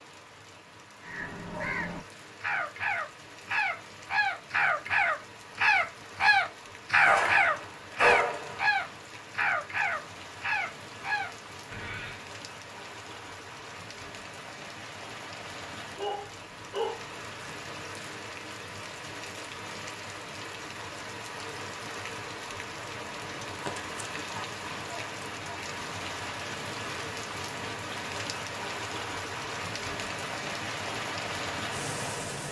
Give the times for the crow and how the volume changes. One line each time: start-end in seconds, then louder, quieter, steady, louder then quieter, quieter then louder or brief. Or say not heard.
1.0-12.2 louder then quieter.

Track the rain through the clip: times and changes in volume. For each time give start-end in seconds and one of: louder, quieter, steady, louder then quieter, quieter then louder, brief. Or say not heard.
0.0-32.4 louder.